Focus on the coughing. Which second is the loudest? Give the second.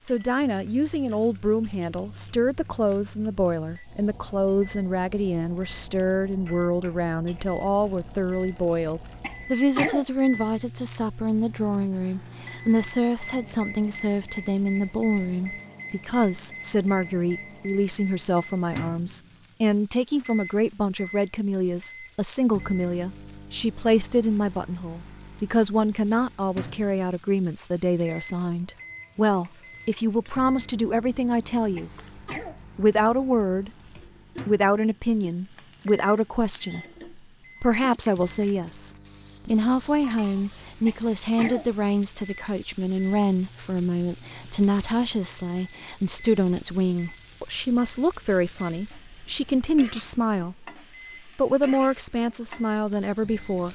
10 s.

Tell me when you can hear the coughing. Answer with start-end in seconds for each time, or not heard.
9.2-10.1, 31.8-32.6, 40.9-41.7.